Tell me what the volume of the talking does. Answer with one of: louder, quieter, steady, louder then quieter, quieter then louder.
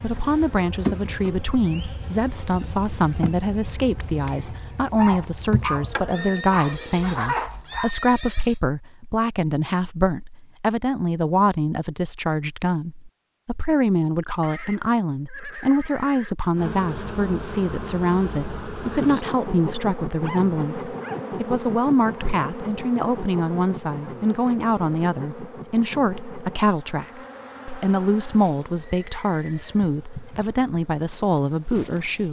steady.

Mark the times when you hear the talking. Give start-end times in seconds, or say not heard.
0.0-32.2.